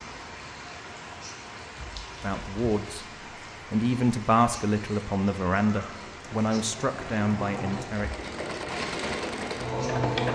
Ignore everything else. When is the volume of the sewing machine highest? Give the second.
10 s.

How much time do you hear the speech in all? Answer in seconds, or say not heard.
5 s.